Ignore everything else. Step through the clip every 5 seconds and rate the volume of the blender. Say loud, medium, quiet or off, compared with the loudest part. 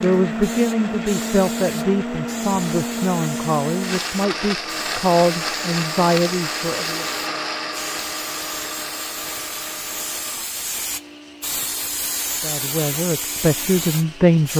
loud, loud, quiet.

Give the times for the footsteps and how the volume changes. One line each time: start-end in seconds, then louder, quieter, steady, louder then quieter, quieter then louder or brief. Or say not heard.
not heard.